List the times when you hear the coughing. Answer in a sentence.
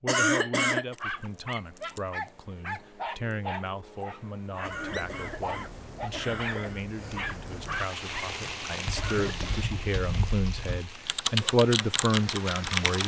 The coughing can be heard from 0.1 to 0.9 s, from 4.6 to 6.9 s and from 8.9 to 9.6 s.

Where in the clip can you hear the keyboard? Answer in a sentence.
The keyboard can be heard from 8.6 to 13.0 s.